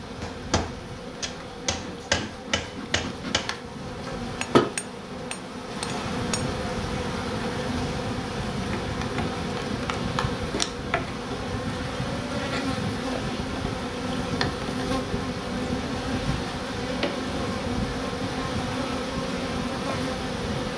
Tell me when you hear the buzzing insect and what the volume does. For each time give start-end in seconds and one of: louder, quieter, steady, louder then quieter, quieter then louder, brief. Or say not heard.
0.0-20.7 louder.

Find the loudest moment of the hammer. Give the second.
2 s.